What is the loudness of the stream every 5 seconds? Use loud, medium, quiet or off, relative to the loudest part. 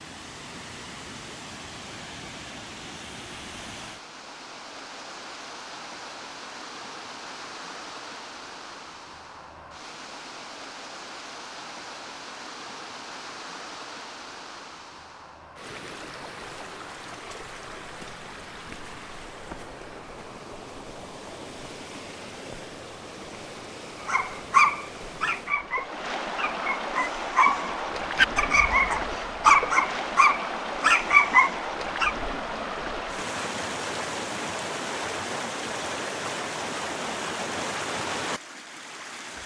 medium, medium, medium, medium, medium, loud, loud, loud.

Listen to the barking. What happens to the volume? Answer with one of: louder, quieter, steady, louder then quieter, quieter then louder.
quieter then louder.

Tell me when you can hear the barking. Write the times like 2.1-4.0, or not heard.
24.1-32.1.